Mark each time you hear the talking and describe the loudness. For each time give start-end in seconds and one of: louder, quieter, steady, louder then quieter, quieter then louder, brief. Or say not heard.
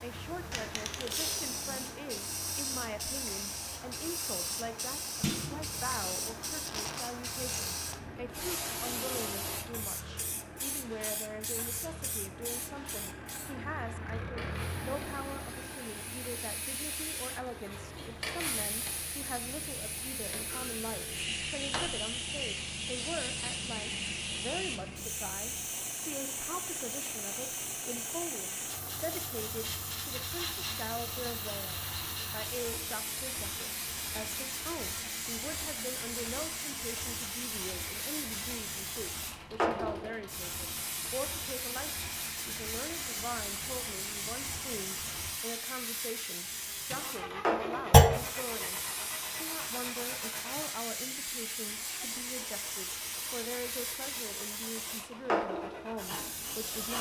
0.0-56.9 steady.